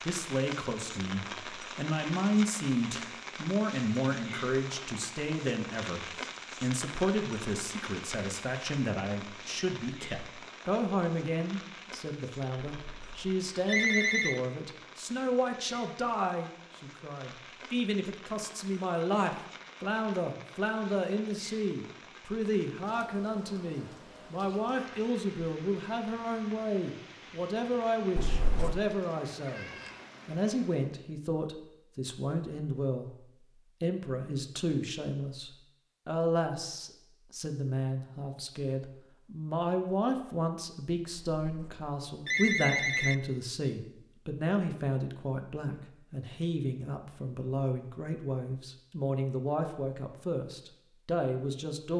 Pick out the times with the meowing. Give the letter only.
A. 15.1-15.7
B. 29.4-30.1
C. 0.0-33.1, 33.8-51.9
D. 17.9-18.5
B.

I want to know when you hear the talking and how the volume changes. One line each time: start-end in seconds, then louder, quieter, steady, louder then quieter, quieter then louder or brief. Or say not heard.
0.0-33.1 steady
33.8-51.9 steady.